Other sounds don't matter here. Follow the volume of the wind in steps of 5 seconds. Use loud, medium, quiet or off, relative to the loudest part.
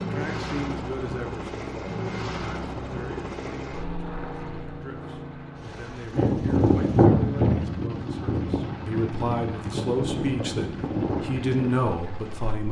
off, loud, medium.